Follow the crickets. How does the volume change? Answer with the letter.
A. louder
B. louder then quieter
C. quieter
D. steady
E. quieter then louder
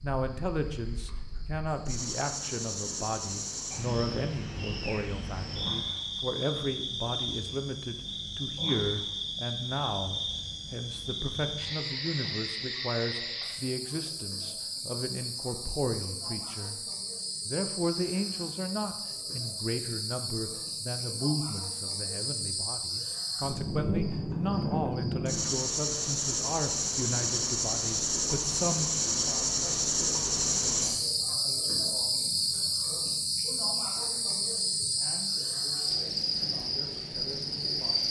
A.